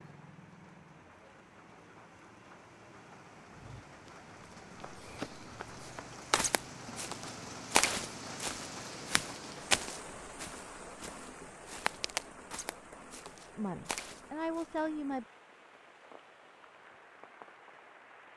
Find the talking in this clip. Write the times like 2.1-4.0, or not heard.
13.6-15.2.